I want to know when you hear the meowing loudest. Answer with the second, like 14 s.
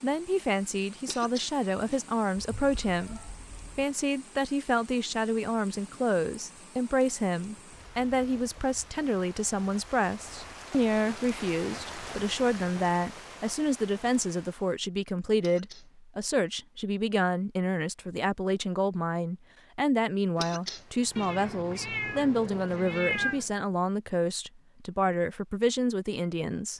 23 s.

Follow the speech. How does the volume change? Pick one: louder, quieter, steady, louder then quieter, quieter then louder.
steady.